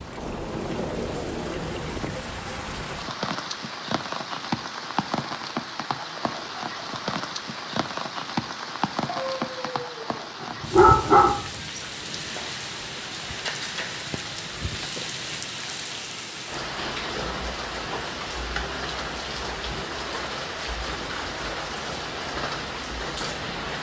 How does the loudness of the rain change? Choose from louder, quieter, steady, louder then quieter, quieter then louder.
steady.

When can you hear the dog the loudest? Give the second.
11 s.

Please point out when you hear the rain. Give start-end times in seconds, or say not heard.
0.0-23.7.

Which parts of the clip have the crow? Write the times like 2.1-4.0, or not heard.
not heard.